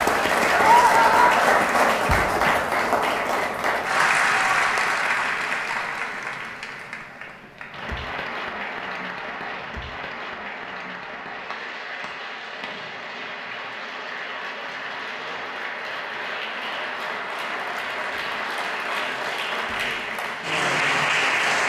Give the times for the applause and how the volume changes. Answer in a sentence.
The applause can be heard from 0.0 to 21.6 s, getting quieter then louder.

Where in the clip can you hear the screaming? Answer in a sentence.
You can hear the screaming from 0.5 to 1.4 s.